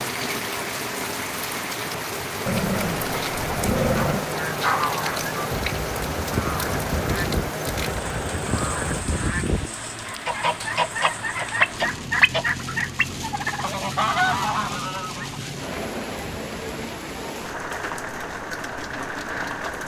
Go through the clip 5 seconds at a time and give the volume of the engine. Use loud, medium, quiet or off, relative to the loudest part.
loud, loud, off, off.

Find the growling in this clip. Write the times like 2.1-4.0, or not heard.
2.5-4.2.